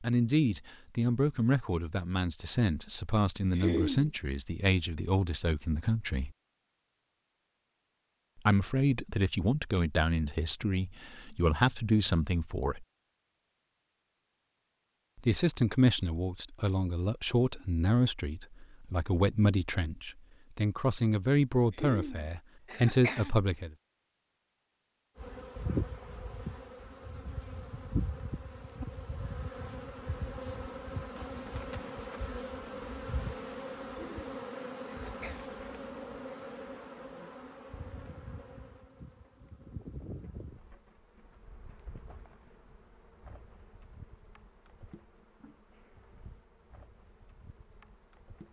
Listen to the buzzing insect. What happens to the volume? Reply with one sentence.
The loudness of the buzzing insect goes down.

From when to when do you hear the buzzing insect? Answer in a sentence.
The buzzing insect can be heard from 25.1 to 48.4 s.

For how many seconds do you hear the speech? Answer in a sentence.
The speech can be heard for 19 seconds in total.